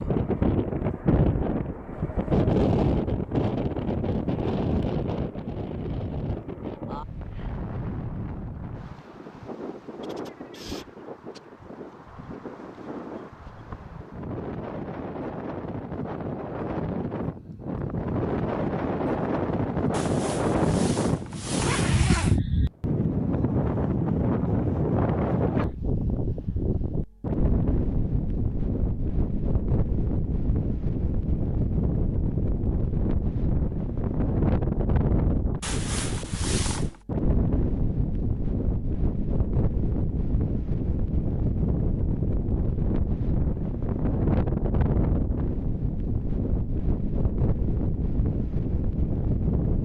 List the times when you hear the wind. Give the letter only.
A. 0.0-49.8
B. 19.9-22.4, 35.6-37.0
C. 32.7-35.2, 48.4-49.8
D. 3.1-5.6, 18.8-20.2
A.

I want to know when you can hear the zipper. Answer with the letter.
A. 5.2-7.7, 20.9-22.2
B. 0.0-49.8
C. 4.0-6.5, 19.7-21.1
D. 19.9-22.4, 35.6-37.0
D.